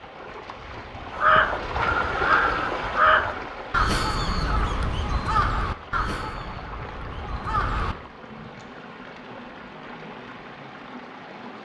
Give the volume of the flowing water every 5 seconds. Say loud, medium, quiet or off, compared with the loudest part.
loud, medium, medium.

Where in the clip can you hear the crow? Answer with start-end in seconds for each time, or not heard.
1.1-8.0.